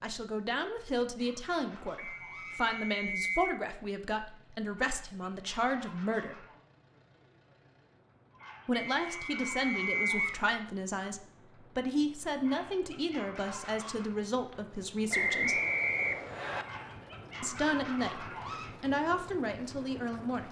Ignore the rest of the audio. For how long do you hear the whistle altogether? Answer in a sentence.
You can hear the whistle for 5 seconds altogether.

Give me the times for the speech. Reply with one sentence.
The speech can be heard from 0.0 to 6.5 s, from 8.7 to 15.6 s and from 17.4 to 20.4 s.